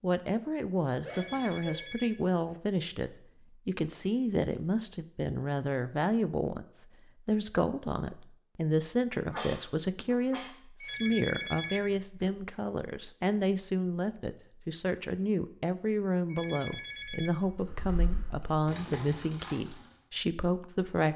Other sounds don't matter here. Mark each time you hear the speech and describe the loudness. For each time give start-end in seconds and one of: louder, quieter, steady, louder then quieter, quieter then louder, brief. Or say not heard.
0.0-21.1 steady.